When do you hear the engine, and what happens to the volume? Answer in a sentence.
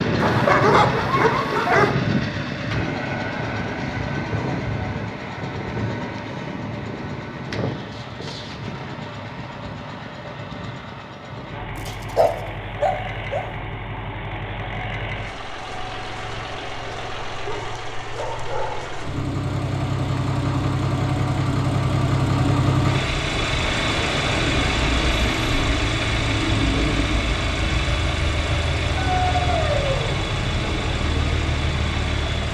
You can hear the engine from 0.0 to 32.4 s, getting quieter then louder.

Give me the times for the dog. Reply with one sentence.
The dog can be heard from 0.2 to 1.9 s, from 11.8 to 13.4 s, from 17.4 to 19.0 s and from 28.9 to 30.1 s.